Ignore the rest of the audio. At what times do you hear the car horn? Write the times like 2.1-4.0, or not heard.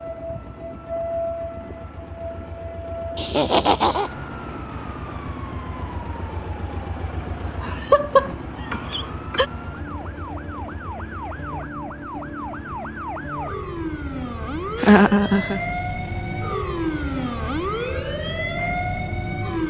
not heard.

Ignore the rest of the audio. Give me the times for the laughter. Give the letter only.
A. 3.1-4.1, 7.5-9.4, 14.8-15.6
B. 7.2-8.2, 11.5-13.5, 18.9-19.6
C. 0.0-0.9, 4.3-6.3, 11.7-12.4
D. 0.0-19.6
A.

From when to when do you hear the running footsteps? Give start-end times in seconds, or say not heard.
not heard.